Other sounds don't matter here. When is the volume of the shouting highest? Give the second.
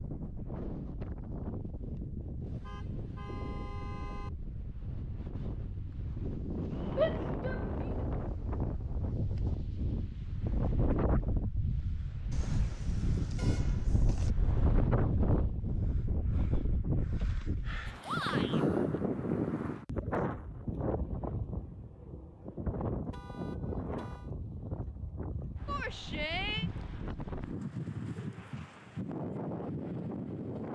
7 s.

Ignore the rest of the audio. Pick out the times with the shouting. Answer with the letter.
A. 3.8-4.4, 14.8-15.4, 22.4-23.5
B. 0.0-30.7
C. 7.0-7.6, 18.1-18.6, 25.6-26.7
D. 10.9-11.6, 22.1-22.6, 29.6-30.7
C.